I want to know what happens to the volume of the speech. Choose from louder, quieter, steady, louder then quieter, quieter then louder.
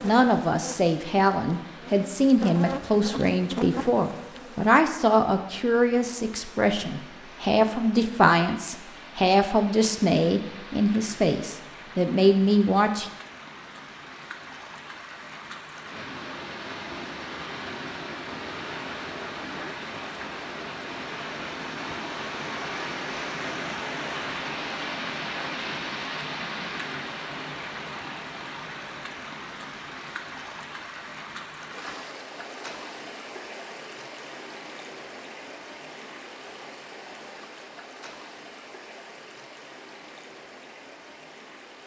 steady.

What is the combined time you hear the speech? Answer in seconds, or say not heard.
13 s.